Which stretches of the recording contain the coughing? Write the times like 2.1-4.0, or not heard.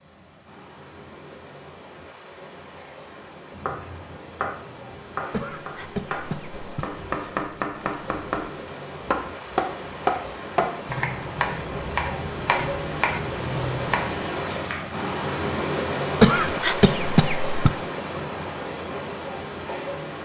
5.3-6.8, 16.2-17.7.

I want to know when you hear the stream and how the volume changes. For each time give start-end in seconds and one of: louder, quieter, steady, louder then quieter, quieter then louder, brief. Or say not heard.
0.0-20.1 louder.